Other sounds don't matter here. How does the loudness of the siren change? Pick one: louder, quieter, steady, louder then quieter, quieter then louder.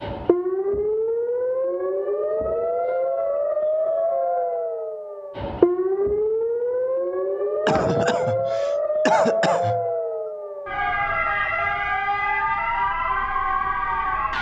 steady.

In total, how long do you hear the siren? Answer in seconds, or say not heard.
14 s.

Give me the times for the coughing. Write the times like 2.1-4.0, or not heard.
7.7-9.8.